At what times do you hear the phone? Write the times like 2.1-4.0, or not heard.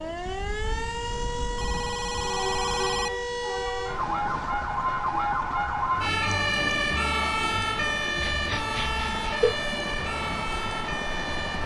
1.1-3.1, 8.2-9.6.